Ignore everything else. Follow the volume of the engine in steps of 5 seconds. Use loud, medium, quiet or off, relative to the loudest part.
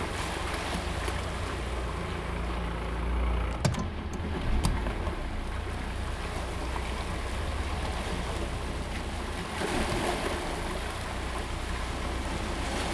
loud, medium, medium.